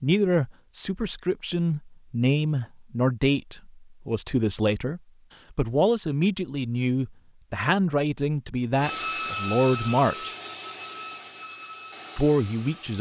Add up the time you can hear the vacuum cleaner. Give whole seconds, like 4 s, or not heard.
4 s.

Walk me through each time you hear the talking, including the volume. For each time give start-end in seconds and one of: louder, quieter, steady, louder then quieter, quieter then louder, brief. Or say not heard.
0.0-10.3 steady
12.2-12.9 brief.